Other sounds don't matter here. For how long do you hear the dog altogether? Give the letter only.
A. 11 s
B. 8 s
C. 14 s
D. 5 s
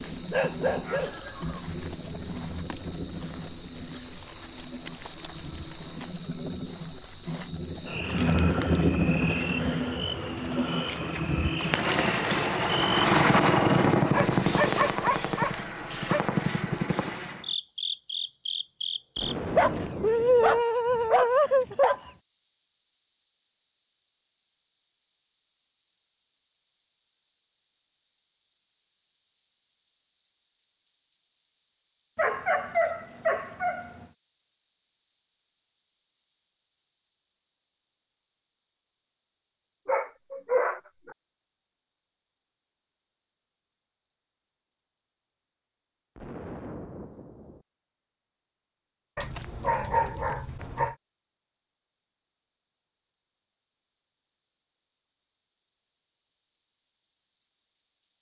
A.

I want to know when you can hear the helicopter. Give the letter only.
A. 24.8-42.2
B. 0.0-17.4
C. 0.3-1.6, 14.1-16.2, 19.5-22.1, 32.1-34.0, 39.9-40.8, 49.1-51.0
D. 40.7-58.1
B.